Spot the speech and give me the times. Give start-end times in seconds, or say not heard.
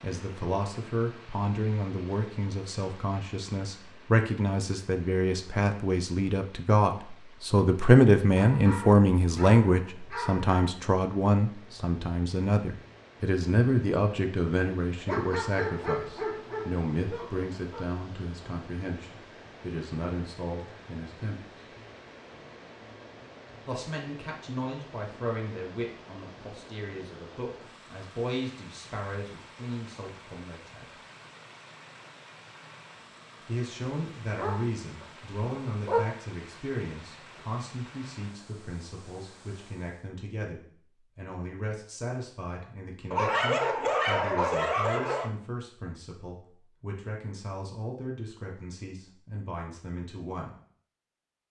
0.0-21.4, 23.6-30.9, 33.4-50.5.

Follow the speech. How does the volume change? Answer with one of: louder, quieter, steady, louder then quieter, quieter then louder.
quieter.